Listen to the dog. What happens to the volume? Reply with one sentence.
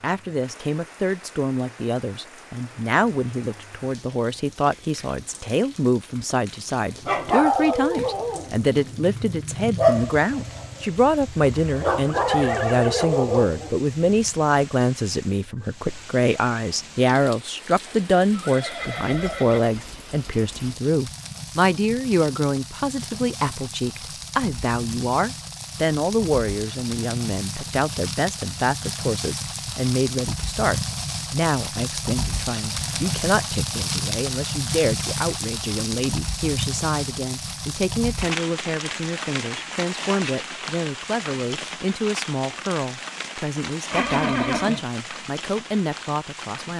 The loudness of the dog goes down, then up.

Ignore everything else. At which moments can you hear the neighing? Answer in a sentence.
The neighing can be heard from 11.4 to 13.2 s, from 17.9 to 19.7 s and from 43.9 to 44.9 s.